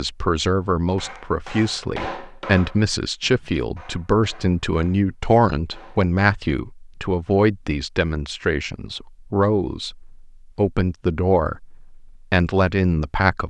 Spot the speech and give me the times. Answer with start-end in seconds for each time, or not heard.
0.0-13.4.